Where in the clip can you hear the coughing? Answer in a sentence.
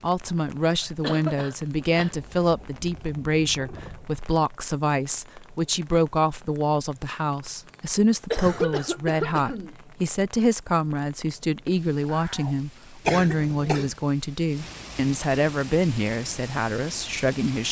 You can hear the coughing from 0.8 to 2.5 s, from 8.3 to 9.8 s and from 13.1 to 13.9 s.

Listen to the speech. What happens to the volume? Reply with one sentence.
The volume of the speech stays about the same.